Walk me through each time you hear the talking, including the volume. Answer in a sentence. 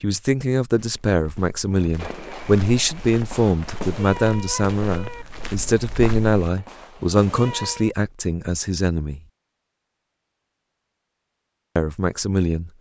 The talking can be heard from 0.0 to 9.2 s, at a steady volume; and briefly from 11.8 to 12.7 s.